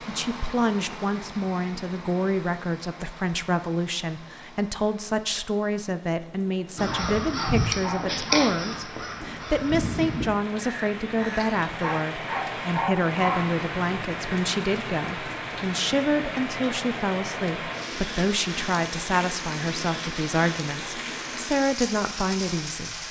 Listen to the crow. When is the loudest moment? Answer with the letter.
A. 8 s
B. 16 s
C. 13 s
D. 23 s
A.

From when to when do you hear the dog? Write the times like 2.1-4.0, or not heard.
6.8-8.2, 11.8-13.4.